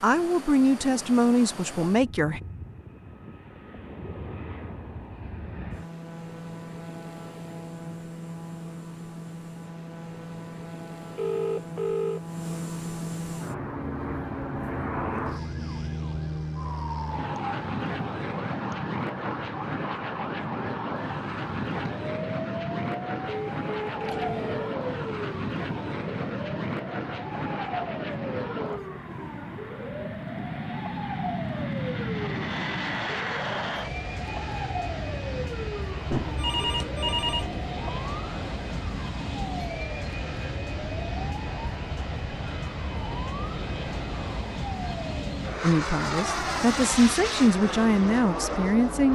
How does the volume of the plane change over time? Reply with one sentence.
The volume of the plane goes up.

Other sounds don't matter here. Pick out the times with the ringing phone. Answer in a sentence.
You can hear the ringing phone from 11.2 to 12.2 s, from 23.2 to 24.8 s and from 36.1 to 37.7 s.